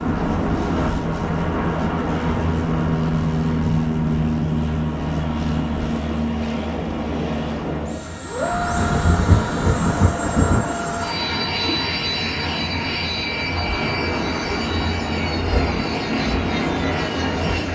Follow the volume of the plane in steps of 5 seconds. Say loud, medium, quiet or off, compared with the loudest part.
loud, loud, loud, medium.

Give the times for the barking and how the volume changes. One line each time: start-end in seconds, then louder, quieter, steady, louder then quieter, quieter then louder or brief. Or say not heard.
not heard.